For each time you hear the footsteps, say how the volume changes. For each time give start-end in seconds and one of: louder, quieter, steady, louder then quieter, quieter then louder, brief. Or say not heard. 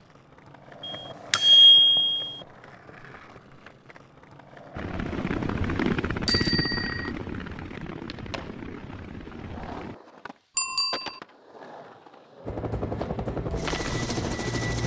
not heard.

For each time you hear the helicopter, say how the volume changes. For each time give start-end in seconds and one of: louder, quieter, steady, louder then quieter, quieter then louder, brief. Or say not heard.
4.8-9.9 quieter
12.4-14.8 brief.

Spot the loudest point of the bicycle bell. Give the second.
2 s.